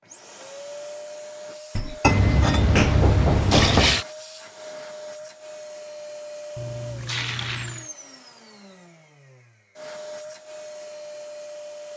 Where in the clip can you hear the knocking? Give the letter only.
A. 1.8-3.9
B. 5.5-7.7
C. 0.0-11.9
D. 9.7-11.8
A.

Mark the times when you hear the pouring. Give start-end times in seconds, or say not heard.
2.0-4.0, 6.5-7.9.